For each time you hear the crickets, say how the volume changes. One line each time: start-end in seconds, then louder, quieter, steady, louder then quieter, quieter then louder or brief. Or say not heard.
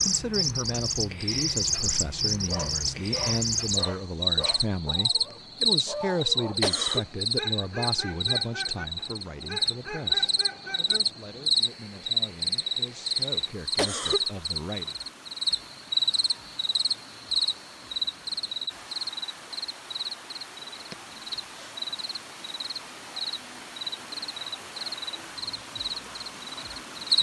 0.0-27.1 quieter.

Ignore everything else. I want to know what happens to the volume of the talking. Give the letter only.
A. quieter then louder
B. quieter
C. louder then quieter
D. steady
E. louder
B.